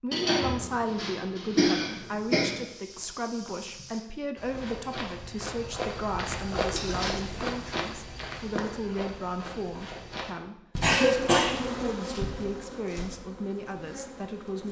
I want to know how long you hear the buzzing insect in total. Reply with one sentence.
The buzzing insect can be heard for 4 seconds in total.